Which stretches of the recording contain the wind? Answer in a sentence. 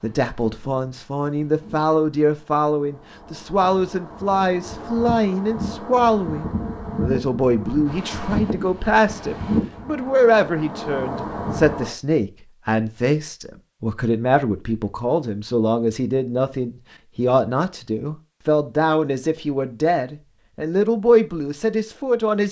You can hear the wind from 0.0 to 11.9 s.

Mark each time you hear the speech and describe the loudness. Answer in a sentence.
The speech can be heard from 0.0 to 22.4 s, at a steady volume.